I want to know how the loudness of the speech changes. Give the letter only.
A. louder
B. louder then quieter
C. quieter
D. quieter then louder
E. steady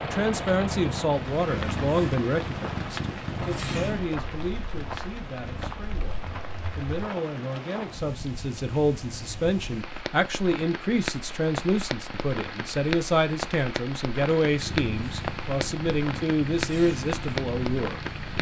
D.